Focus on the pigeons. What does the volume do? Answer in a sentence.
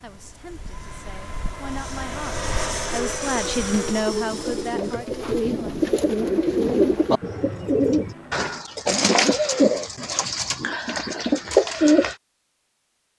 The volume of the pigeons goes up.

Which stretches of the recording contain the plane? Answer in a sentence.
You can hear the plane from 0.0 to 8.6 s.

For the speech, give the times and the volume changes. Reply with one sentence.
You can hear the speech from 0.0 to 5.8 s, getting louder then quieter.